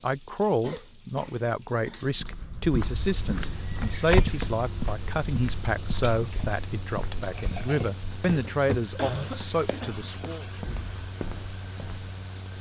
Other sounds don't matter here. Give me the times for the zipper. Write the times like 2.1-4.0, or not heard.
not heard.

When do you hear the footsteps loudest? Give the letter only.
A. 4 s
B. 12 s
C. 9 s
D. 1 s
A.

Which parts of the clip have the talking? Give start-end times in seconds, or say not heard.
0.0-10.4.